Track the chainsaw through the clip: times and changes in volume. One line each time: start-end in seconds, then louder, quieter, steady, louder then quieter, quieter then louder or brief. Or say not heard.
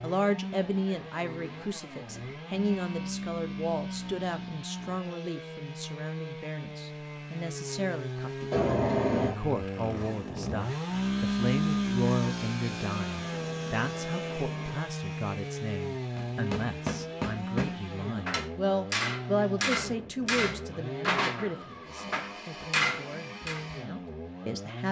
0.0-24.8 louder then quieter.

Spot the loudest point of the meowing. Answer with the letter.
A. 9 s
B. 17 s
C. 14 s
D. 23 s
A.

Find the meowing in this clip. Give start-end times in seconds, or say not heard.
8.5-9.3, 12.8-14.8.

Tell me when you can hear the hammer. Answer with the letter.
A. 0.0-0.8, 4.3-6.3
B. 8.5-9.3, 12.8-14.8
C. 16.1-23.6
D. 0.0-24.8
C.